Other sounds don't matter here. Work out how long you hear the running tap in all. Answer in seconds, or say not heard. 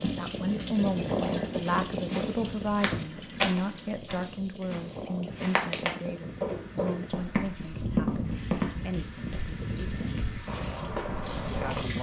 12 s.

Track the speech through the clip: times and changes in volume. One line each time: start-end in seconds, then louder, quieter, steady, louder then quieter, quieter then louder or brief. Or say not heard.
0.0-10.2 quieter
11.5-11.9 brief.